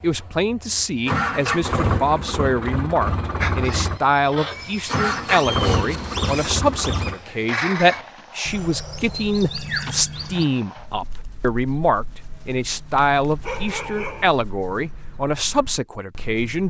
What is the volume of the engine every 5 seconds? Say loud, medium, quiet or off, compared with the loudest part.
loud, loud, off, off.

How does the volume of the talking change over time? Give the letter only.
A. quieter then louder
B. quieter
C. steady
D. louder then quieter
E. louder
C.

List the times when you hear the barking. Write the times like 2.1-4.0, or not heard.
13.4-14.3.